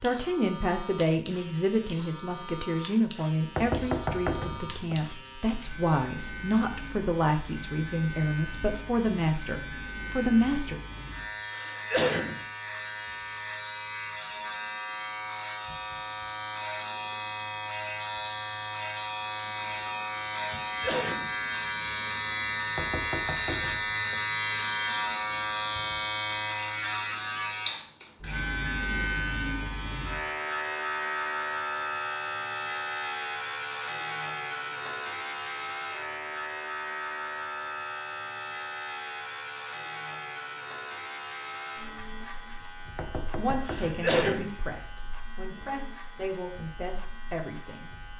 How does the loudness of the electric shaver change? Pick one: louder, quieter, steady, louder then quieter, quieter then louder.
louder then quieter.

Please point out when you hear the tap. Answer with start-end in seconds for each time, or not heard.
not heard.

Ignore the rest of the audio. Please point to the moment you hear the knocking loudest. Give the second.
4 s.